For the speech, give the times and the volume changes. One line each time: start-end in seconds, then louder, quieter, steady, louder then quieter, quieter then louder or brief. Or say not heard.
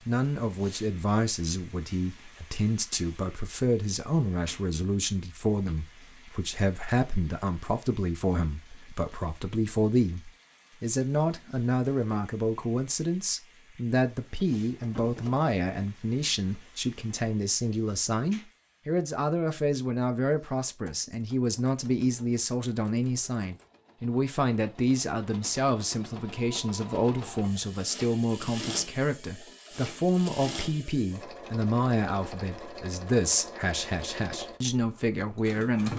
0.1-35.9 steady.